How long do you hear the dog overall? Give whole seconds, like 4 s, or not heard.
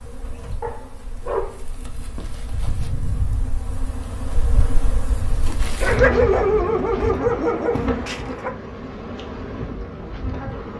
5 s.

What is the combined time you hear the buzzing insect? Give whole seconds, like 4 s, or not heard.
11 s.